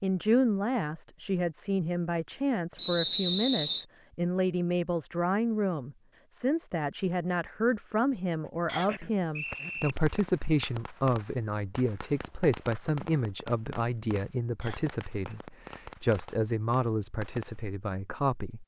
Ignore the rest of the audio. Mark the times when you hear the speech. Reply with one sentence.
You can hear the speech from 0.0 to 18.6 s.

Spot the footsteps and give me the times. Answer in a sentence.
You can't hear the footsteps here.